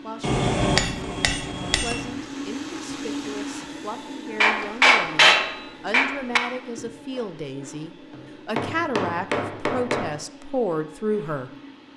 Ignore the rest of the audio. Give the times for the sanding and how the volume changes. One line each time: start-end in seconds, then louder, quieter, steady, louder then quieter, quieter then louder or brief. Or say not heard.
not heard.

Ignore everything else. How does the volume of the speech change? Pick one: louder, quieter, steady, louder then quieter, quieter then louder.
louder.